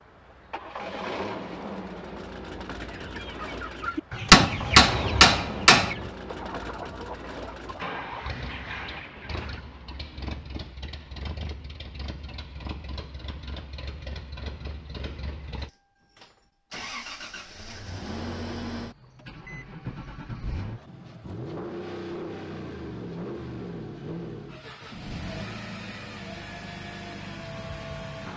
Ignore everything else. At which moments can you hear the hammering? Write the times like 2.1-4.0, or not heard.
4.3-6.0.